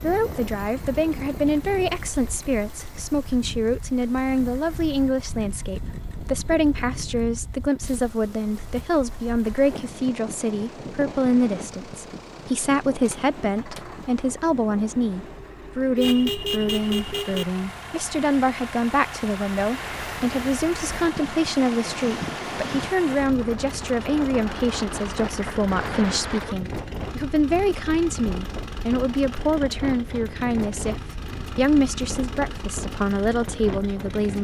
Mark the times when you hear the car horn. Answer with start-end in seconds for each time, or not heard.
15.9-17.4.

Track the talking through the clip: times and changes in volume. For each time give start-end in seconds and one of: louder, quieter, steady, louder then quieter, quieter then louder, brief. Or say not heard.
0.0-34.3 steady.